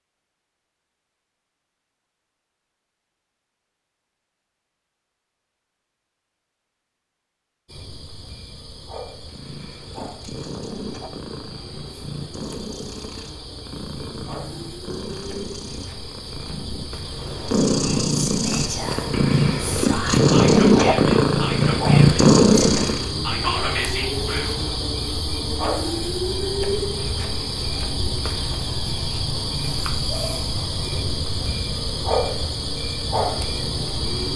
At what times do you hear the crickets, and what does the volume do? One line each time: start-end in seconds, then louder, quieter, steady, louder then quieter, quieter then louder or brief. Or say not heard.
7.7-34.3 louder.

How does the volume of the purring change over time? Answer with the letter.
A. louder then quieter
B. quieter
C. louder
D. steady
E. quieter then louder
C.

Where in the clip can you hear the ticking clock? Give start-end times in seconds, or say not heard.
not heard.